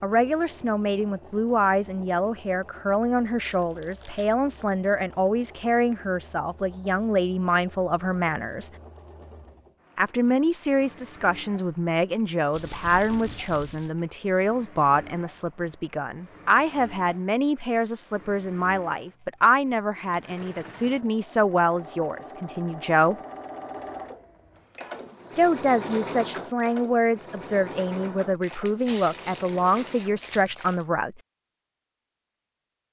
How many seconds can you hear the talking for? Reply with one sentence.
You can hear the talking for 28 seconds altogether.